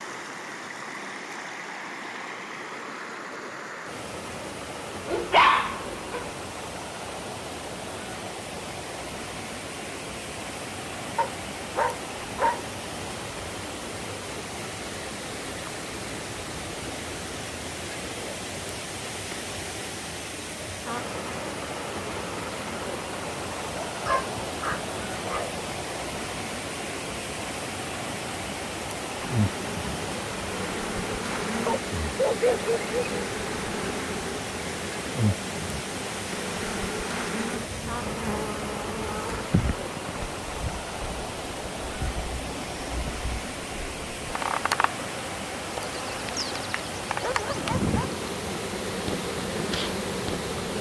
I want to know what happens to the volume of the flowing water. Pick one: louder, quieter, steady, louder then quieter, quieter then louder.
steady.